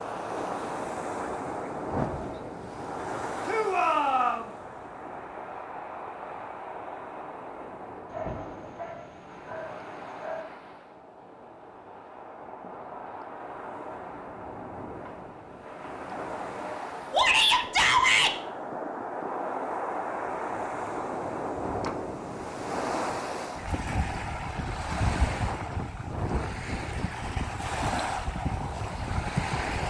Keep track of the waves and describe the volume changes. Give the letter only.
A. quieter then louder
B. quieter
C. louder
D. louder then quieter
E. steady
A.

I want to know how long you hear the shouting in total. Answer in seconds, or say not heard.
2 s.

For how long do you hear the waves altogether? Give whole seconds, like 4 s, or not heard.
30 s.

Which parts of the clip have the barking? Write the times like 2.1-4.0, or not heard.
8.1-10.4.